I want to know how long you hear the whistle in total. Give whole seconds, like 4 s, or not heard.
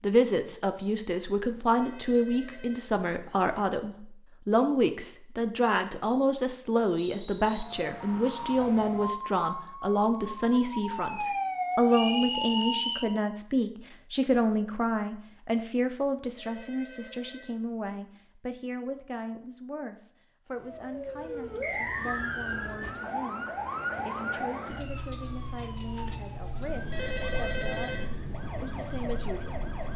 3 s.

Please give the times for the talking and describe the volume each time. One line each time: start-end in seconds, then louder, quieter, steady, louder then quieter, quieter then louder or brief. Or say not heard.
0.0-29.6 quieter.